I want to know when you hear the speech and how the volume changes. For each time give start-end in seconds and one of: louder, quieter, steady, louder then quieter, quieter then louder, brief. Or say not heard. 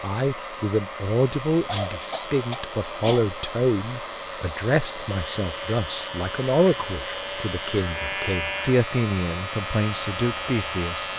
0.0-11.1 steady.